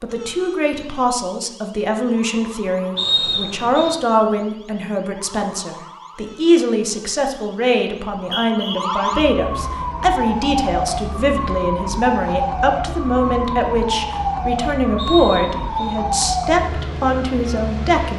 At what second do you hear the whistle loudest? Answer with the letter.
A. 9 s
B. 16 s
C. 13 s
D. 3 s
D.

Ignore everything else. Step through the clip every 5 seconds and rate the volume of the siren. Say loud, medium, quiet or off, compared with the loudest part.
quiet, medium, loud, loud.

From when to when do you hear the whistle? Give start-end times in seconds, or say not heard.
3.0-3.9, 8.2-9.3, 14.9-15.9.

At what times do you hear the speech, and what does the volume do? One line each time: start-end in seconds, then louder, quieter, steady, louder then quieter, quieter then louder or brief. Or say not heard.
0.0-18.1 steady.